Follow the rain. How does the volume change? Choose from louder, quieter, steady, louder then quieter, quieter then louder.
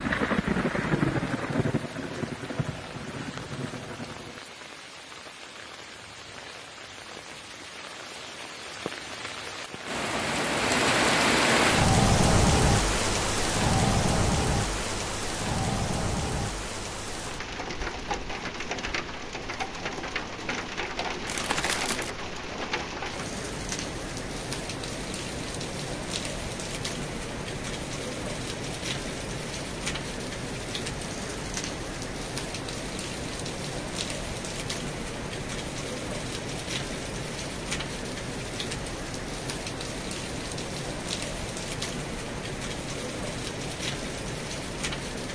louder then quieter.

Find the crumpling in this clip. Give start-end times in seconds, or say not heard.
21.2-22.1.